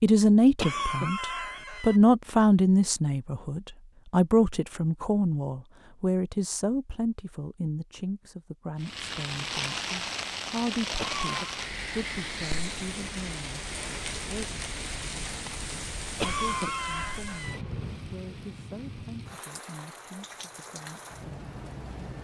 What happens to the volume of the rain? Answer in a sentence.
The volume of the rain goes down.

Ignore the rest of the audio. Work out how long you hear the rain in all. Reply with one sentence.
The rain can be heard for 13 seconds in total.